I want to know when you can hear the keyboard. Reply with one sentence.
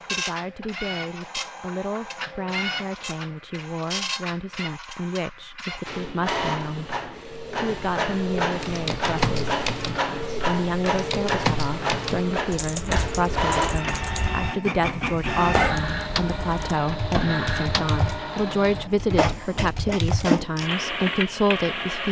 You can hear the keyboard from 8.6 to 20.3 s.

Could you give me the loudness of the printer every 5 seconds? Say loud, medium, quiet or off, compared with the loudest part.
medium, loud, loud, loud, loud.